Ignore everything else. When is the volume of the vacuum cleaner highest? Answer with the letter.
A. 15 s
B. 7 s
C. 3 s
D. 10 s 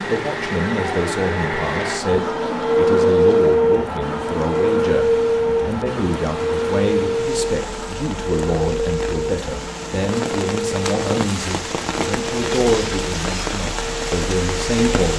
C.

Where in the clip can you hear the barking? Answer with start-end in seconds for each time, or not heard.
not heard.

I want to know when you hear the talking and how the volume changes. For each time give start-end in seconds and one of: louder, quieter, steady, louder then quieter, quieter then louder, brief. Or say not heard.
0.1-15.1 steady.